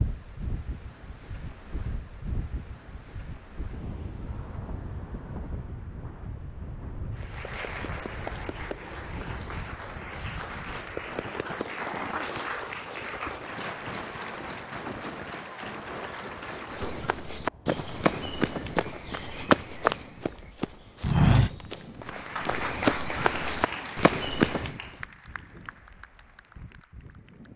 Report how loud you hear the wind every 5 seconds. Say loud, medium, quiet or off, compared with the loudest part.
loud, loud, loud, loud, medium, quiet.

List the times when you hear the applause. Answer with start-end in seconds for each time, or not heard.
7.1-17.1, 22.0-27.5.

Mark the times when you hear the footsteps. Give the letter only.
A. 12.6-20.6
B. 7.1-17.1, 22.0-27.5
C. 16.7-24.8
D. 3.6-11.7
C.